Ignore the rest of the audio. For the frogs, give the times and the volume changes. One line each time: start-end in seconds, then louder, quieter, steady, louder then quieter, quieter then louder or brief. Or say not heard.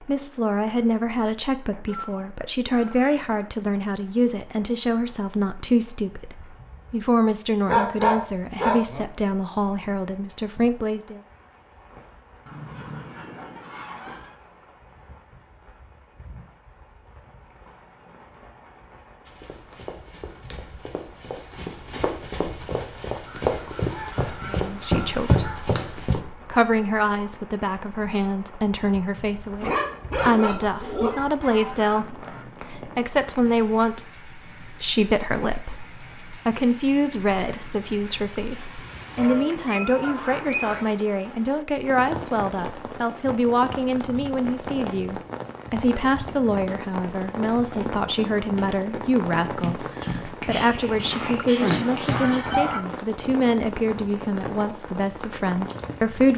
not heard.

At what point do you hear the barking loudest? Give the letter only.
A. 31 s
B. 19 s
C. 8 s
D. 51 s
C.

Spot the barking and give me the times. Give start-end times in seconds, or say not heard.
7.7-9.1, 29.1-31.3, 50.0-52.2.